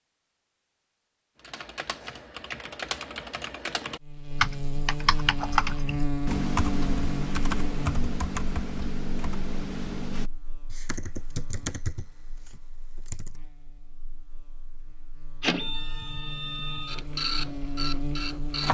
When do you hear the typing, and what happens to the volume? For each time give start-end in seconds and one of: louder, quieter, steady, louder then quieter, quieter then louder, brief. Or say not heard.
1.4-13.4 louder then quieter.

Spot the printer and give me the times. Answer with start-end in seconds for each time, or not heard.
15.4-18.6.